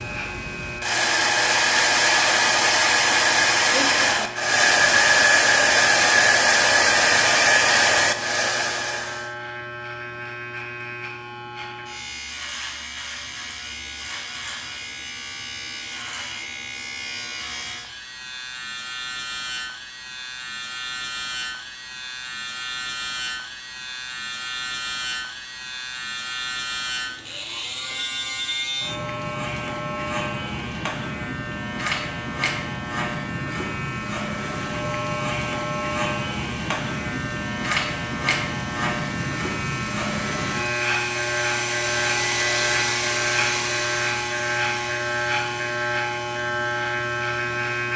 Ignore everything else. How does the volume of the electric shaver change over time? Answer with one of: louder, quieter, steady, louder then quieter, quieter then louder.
louder.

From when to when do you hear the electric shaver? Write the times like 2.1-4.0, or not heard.
0.0-47.9.